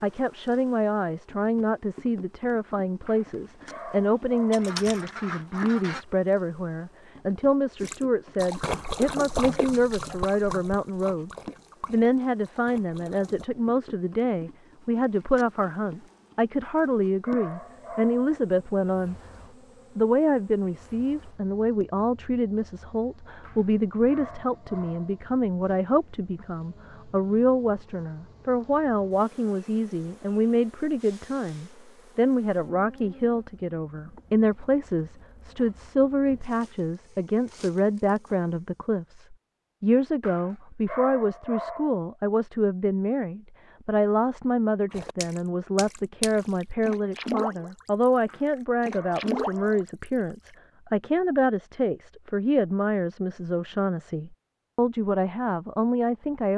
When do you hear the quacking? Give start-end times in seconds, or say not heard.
4.5-6.0.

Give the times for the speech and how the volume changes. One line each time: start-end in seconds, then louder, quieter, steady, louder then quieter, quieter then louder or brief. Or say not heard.
0.0-19.1 steady
19.9-56.5 steady.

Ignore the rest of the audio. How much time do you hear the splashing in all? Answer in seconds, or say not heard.
10 s.